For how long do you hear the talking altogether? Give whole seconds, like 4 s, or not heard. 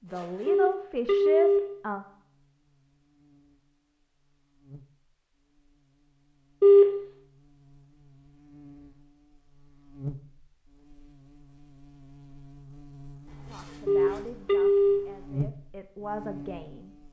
6 s.